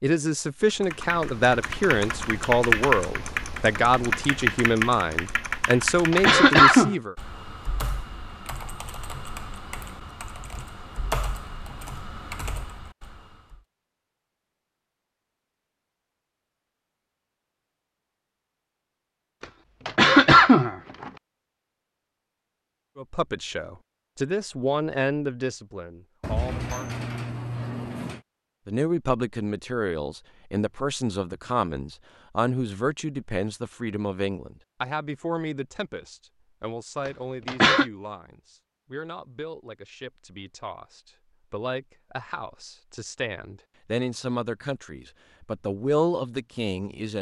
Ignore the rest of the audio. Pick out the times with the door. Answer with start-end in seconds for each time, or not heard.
26.2-28.2.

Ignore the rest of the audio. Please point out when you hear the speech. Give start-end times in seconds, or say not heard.
0.0-7.2, 22.9-26.9, 28.6-47.1.